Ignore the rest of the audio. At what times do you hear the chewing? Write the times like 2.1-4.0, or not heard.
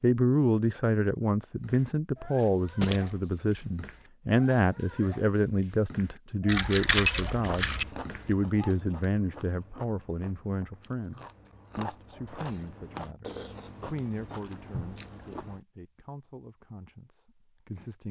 7.4-15.6.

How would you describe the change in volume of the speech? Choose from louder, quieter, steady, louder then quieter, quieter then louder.
quieter.